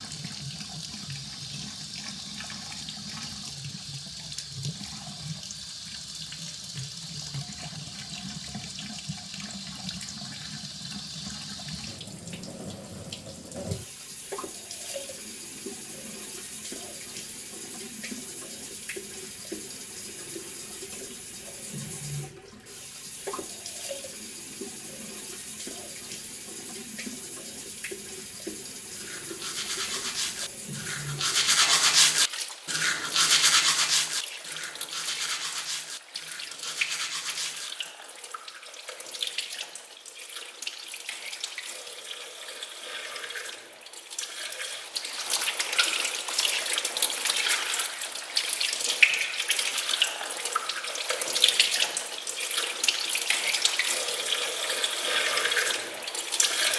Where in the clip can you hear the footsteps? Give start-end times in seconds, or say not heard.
not heard.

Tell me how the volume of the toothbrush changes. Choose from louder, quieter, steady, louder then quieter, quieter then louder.
louder then quieter.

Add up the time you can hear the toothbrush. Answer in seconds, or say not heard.
9 s.